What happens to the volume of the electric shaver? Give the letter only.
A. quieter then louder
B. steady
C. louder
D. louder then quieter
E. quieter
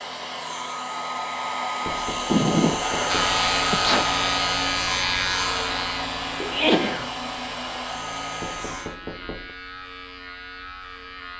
E.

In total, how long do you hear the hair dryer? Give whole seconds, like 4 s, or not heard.
9 s.